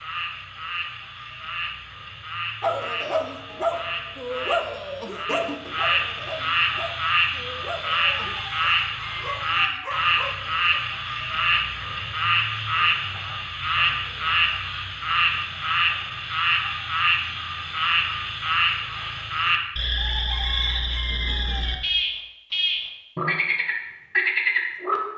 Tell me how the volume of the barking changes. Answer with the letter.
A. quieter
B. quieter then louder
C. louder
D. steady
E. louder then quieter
A.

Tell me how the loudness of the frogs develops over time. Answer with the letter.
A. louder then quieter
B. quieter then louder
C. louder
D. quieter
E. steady
C.